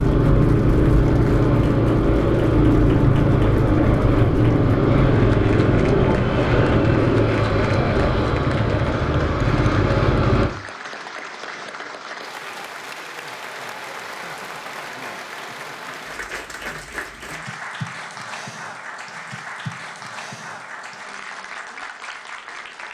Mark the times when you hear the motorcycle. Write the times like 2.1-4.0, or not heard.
0.0-10.5.